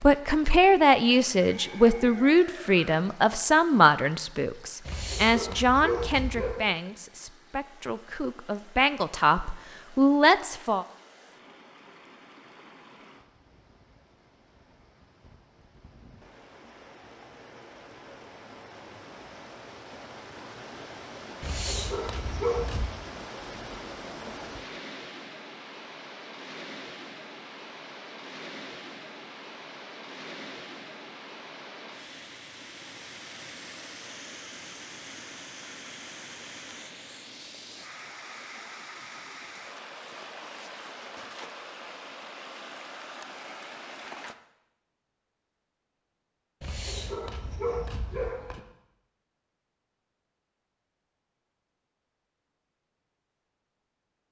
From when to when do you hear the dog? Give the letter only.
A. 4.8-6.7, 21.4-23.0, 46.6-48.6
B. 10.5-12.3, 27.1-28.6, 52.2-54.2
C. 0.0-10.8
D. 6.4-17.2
A.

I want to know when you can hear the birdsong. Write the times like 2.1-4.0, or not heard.
not heard.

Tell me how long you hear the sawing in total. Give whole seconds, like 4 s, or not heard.
not heard.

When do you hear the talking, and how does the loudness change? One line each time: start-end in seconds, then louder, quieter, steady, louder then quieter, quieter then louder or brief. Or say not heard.
0.0-10.8 quieter then louder.